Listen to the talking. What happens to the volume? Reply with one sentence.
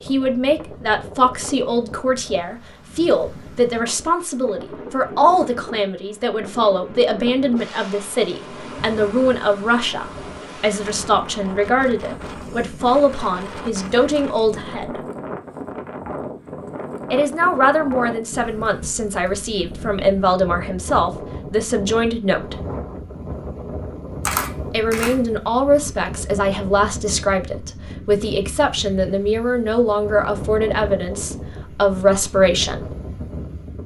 The volume of the talking stays about the same.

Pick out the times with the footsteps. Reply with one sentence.
The footsteps can't be heard in this clip.